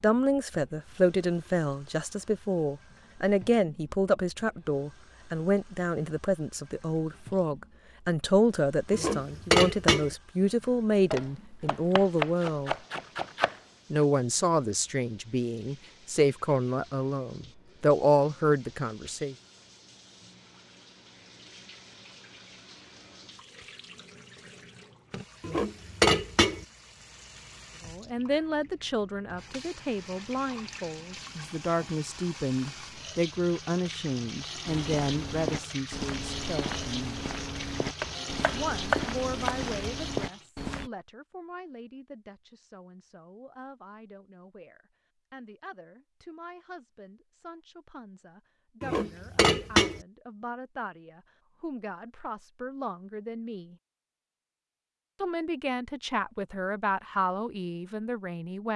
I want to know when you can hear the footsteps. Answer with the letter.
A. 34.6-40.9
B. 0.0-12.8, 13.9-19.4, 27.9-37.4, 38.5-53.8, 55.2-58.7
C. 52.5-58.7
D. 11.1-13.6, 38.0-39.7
A.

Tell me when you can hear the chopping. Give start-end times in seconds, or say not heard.
11.1-13.6, 38.0-39.7.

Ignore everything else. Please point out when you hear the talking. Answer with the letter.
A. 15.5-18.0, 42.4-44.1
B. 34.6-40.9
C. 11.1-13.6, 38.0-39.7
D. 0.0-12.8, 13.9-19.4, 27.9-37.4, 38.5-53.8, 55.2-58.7
D.